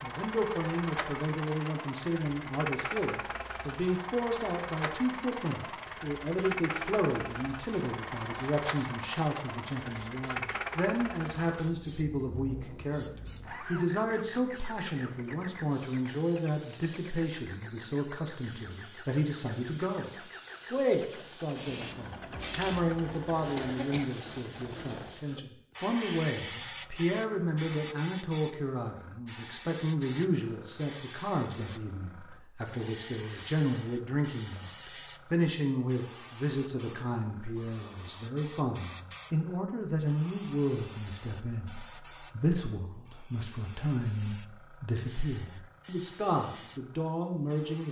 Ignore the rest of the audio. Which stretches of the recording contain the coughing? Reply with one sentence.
The coughing can be heard from 23.6 to 24.1 s.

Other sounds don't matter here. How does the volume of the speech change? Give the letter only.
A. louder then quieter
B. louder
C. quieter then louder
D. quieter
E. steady
E.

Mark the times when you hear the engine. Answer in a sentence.
You can hear the engine from 0.0 to 25.2 s.